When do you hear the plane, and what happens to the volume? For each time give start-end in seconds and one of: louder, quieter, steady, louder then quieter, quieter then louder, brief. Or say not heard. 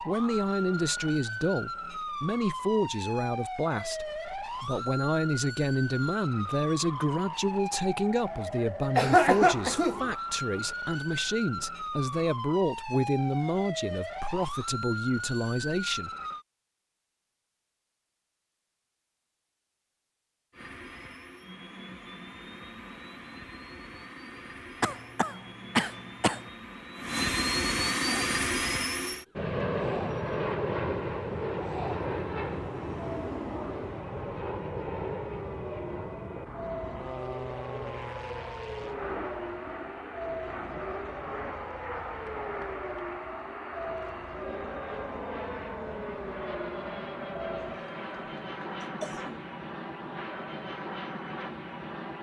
20.5-52.1 louder then quieter.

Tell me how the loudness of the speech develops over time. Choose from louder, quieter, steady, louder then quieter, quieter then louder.
steady.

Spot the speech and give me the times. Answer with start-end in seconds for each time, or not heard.
0.0-16.1.